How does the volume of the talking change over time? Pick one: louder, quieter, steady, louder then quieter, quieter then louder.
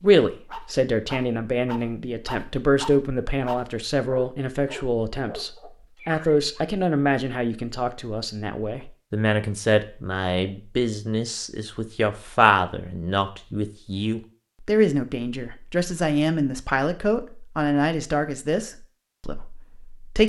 steady.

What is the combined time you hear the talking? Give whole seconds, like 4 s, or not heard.
20 s.